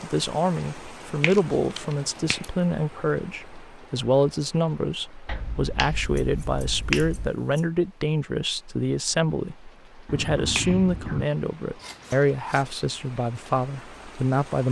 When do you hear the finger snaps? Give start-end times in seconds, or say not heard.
1.2-2.5, 5.2-7.3, 10.1-11.2.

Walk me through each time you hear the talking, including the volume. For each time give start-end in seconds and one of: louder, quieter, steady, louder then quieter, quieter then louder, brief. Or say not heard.
0.0-14.6 steady.